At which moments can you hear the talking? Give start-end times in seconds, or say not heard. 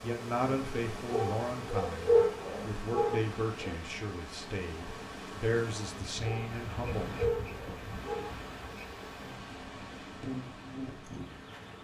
0.0-7.1.